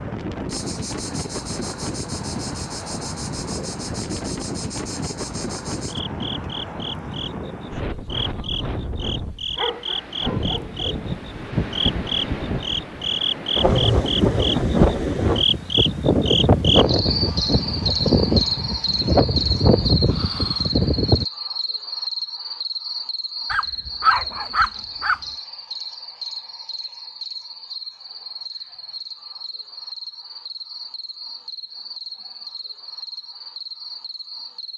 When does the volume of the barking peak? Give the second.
24 s.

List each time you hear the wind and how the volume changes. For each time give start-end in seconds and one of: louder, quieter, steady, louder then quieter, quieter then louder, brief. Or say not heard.
0.0-21.2 louder.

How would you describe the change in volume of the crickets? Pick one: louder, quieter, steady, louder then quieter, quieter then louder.
louder then quieter.